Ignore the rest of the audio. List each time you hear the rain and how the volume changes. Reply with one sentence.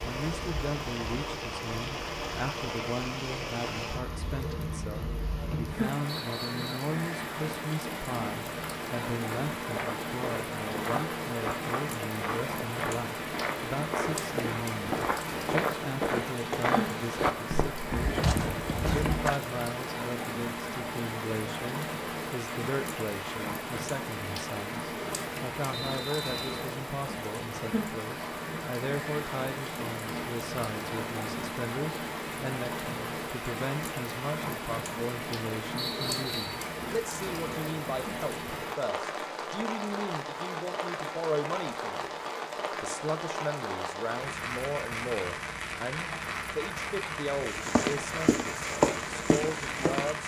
You can hear the rain from 0.0 to 50.2 s, at a steady volume.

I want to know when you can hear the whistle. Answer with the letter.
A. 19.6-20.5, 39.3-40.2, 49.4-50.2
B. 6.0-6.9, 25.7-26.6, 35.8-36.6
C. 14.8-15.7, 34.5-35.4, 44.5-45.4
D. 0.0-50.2
B.